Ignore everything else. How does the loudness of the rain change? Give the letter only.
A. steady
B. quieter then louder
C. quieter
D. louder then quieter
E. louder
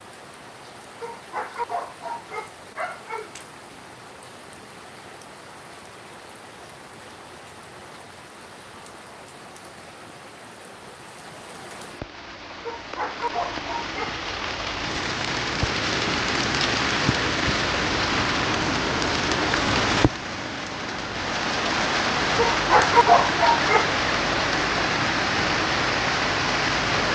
E.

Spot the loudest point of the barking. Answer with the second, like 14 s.
23 s.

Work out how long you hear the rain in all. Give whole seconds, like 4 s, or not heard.
27 s.